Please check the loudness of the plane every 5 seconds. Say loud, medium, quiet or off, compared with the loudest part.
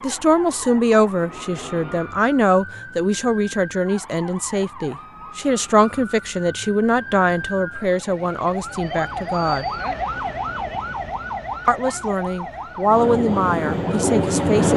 quiet, off, loud.